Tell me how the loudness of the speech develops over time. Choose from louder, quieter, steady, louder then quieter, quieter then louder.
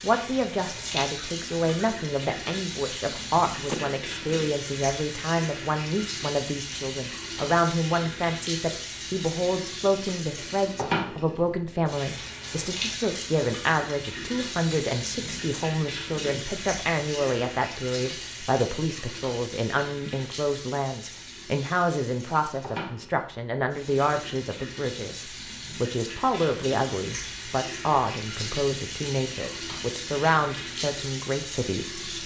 steady.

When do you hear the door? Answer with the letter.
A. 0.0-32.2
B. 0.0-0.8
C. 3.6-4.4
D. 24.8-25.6
C.